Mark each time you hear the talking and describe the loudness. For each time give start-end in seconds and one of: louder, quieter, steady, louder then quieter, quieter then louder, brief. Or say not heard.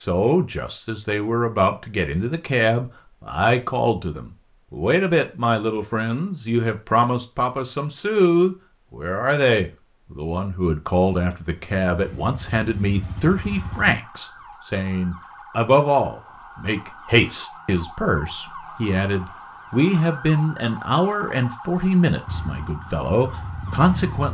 0.0-24.2 steady.